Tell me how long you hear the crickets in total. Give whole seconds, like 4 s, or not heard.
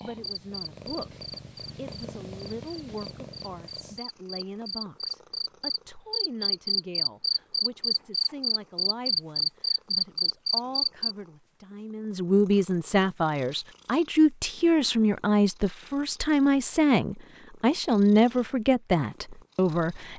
11 s.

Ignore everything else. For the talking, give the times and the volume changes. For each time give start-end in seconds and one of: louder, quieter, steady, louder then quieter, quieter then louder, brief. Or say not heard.
0.0-20.1 louder.